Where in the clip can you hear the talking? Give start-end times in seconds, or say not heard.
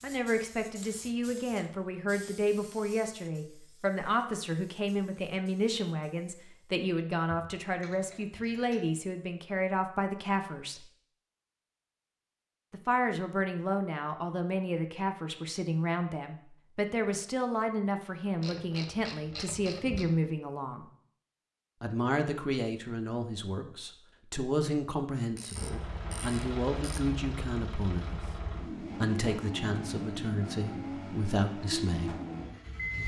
0.0-10.8, 12.7-20.9, 21.8-32.2.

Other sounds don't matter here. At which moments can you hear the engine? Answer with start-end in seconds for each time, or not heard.
25.6-33.0.